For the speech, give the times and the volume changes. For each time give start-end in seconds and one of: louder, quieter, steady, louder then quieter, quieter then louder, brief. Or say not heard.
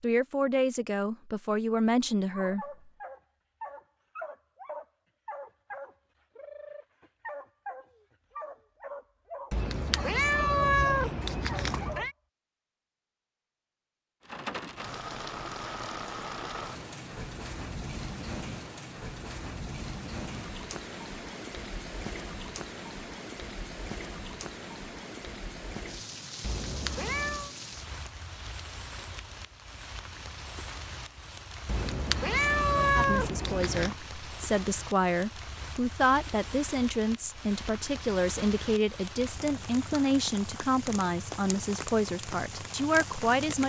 0.0-2.6 brief
33.0-43.6 steady.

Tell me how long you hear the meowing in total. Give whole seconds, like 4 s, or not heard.
6 s.